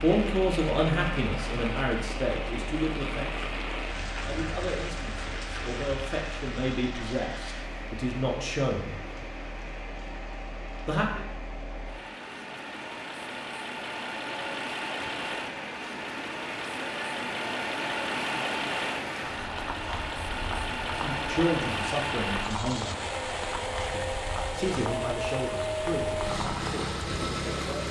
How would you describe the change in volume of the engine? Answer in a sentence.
The loudness of the engine goes up.